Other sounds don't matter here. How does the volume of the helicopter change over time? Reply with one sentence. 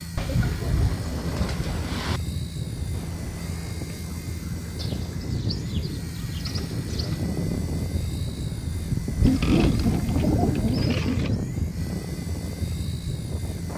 The loudness of the helicopter stays about the same.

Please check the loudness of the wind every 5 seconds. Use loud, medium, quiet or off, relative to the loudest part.
medium, loud, loud.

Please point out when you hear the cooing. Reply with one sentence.
The cooing can be heard from 0.1 to 2.2 s, from 4.8 to 7.2 s and from 9.2 to 11.4 s.